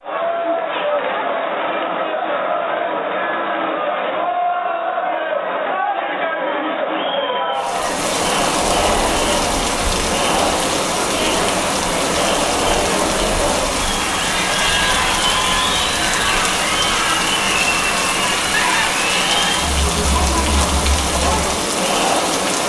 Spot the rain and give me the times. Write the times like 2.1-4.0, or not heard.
7.5-22.6.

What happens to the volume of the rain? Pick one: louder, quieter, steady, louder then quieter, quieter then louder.
steady.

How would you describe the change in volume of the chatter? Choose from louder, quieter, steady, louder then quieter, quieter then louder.
steady.